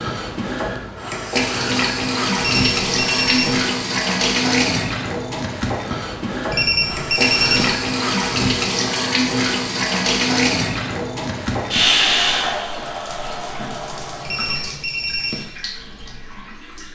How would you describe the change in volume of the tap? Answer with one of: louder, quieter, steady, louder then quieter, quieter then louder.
quieter.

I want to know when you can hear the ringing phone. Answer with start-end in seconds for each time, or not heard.
2.4-3.6, 6.5-7.8, 14.2-15.4.